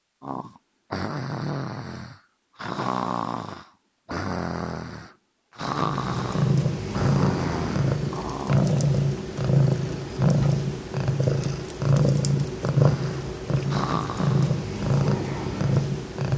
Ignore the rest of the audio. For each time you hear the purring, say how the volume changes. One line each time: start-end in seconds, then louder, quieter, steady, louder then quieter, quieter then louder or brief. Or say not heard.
5.7-16.3 steady.